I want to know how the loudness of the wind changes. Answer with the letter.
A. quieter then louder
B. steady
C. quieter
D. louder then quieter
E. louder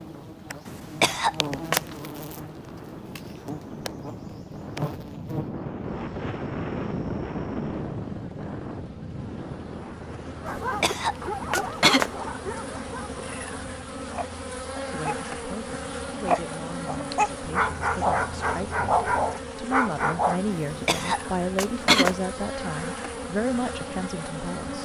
D.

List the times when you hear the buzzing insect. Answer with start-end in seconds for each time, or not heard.
0.0-24.8.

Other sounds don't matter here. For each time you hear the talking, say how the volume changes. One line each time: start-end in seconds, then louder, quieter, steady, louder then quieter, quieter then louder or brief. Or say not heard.
14.8-24.8 louder.